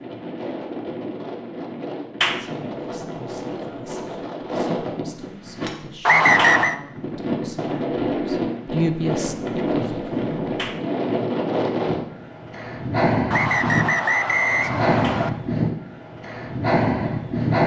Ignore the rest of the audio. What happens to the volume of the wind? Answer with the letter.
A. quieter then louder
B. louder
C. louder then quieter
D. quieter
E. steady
B.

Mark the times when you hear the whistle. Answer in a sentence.
You can hear the whistle from 6.0 to 6.8 s and from 13.3 to 15.3 s.